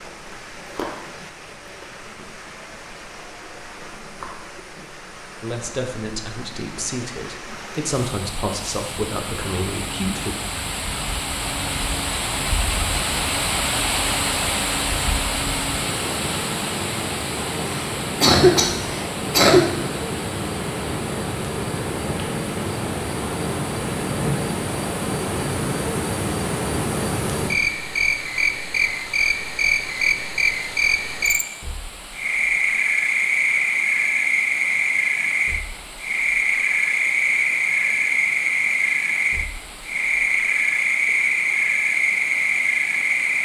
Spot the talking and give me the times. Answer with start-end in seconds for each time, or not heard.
5.4-10.3.